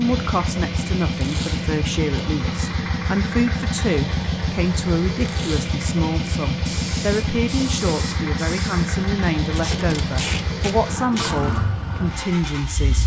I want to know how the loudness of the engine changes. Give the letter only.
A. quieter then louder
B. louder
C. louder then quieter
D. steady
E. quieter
D.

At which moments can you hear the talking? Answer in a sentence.
The talking can be heard from 0.0 to 13.0 s.